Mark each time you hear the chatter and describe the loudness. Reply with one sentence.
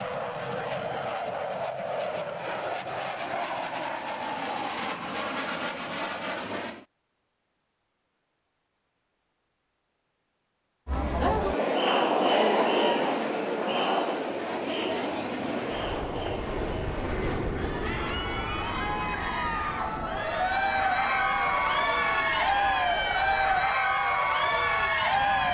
The chatter can be heard from 10.8 to 25.4 s, getting quieter then louder.